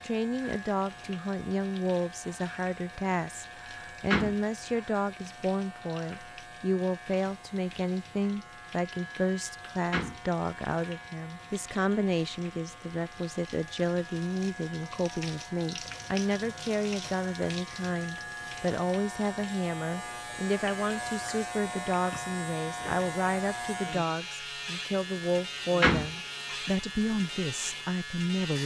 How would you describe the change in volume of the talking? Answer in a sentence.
The volume of the talking stays about the same.